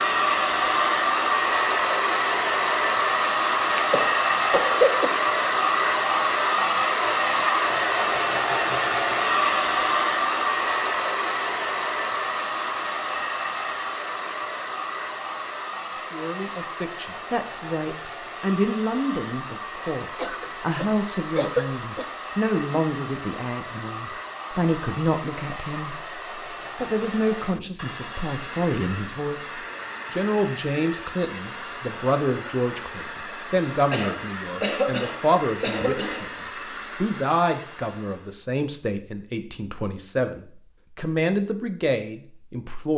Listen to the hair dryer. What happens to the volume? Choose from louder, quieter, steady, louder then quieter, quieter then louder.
quieter.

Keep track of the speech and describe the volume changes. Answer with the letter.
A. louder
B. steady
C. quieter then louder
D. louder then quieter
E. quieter
B.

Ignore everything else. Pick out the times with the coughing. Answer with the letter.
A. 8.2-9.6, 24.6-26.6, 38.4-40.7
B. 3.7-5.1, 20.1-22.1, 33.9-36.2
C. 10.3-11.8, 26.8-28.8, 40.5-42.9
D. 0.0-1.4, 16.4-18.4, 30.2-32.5
B.